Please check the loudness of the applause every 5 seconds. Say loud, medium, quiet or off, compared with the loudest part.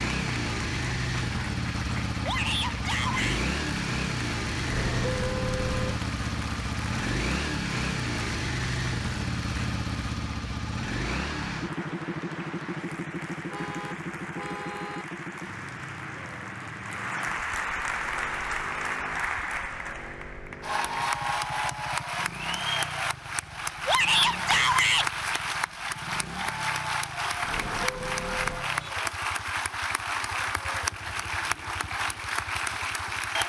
medium, medium, medium, loud, loud, loud, loud.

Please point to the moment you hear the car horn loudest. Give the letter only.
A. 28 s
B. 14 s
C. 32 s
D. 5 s
D.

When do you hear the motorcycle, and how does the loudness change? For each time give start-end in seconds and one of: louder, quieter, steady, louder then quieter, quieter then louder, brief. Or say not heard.
0.0-33.4 quieter.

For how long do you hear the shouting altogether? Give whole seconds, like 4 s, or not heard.
2 s.